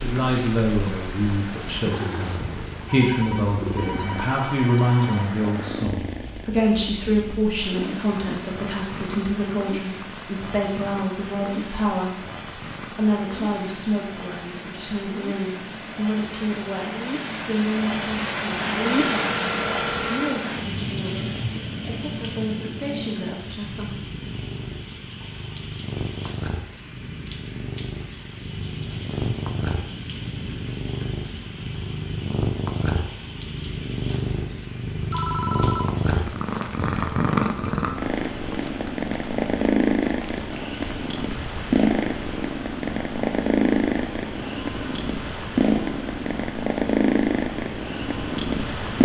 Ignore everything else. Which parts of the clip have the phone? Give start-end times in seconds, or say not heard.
2.9-5.3, 18.9-20.4, 35.1-36.0.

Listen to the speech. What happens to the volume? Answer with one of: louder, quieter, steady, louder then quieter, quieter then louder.
quieter.